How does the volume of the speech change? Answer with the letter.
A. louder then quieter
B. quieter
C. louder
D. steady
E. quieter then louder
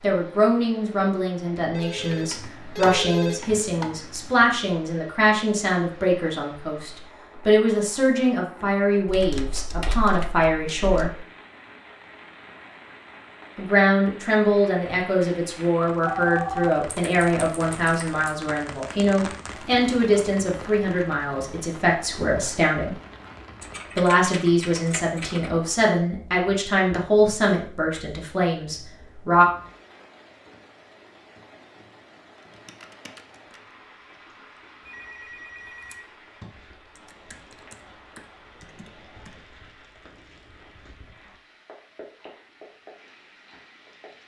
D.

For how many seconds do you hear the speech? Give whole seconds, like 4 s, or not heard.
26 s.